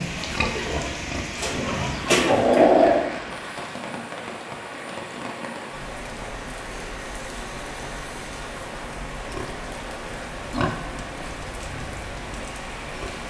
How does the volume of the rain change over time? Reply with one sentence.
The volume of the rain stays about the same.